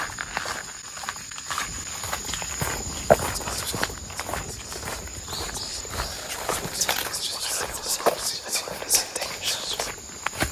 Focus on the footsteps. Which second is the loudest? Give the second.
3 s.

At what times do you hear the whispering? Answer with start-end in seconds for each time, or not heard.
3.3-9.9.